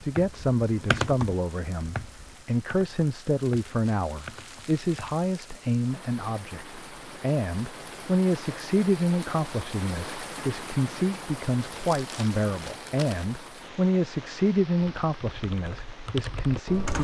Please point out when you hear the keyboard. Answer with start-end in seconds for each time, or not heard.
0.0-5.2, 14.8-17.0.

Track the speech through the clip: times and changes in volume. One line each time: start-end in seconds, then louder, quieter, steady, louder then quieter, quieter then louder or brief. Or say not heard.
0.0-17.0 steady.